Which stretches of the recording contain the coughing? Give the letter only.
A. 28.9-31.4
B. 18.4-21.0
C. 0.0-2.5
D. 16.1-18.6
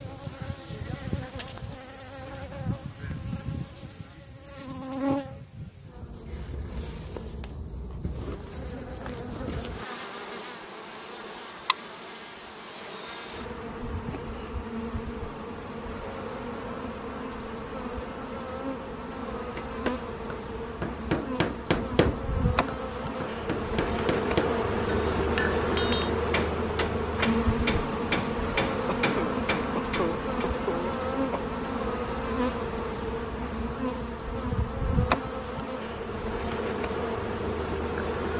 A.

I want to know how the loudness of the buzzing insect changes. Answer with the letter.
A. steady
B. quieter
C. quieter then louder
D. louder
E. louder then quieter
D.